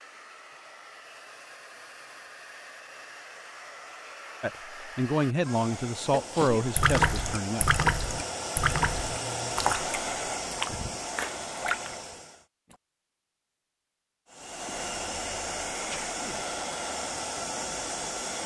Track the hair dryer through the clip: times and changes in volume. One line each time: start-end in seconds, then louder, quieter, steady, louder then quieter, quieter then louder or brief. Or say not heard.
0.0-12.4 louder
14.2-18.4 steady.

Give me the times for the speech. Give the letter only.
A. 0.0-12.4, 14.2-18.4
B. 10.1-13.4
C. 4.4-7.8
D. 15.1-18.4
C.